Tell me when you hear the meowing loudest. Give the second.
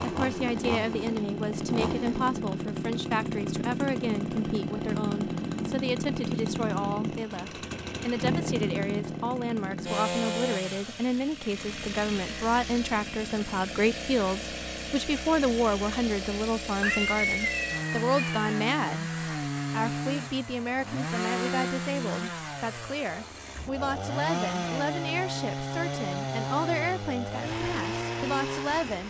17 s.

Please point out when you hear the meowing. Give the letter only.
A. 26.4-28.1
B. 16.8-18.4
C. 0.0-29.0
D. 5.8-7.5
B.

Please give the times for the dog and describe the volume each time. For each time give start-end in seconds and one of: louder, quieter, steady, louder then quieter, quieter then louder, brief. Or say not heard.
not heard.